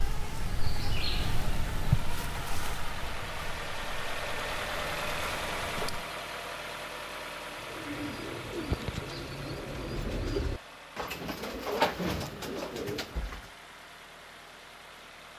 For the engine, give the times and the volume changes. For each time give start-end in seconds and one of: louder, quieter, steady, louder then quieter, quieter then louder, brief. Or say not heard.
0.0-15.3 louder then quieter.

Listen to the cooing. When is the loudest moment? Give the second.
12 s.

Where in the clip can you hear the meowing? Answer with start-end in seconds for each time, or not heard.
not heard.